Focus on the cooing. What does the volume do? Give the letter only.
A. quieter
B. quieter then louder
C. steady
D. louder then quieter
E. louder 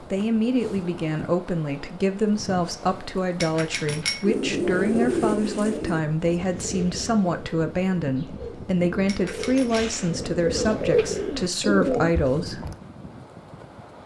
B.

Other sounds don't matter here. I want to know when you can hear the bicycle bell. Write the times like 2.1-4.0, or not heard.
3.4-4.2, 9.1-9.8.